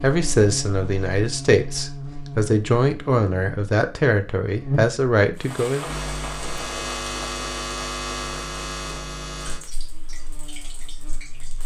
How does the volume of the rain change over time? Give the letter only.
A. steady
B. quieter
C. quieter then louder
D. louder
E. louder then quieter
B.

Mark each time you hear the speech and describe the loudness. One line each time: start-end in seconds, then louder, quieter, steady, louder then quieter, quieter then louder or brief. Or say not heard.
0.0-5.8 steady.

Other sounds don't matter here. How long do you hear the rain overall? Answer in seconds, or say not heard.
6 s.